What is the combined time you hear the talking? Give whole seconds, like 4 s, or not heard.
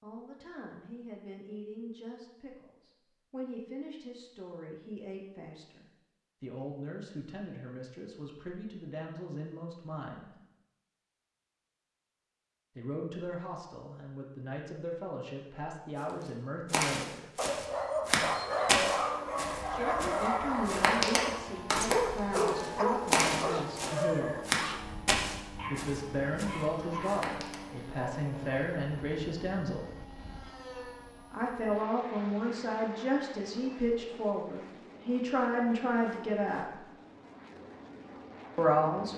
30 s.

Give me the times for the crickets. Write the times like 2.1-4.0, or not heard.
not heard.